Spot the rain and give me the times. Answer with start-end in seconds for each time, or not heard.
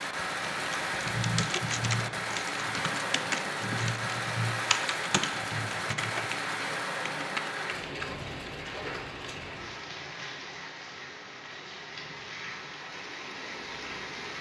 0.0-14.3.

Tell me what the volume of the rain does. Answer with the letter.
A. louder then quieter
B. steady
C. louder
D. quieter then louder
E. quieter
E.